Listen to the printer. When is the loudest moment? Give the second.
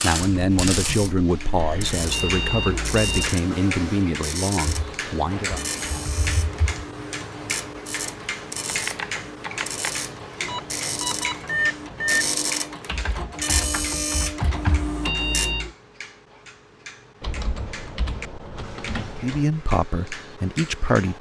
14 s.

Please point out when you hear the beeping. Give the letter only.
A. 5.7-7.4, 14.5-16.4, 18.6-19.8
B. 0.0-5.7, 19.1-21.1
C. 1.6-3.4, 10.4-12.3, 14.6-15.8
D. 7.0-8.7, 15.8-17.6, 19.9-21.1
C.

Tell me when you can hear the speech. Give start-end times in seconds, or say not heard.
0.0-5.7, 19.1-21.1.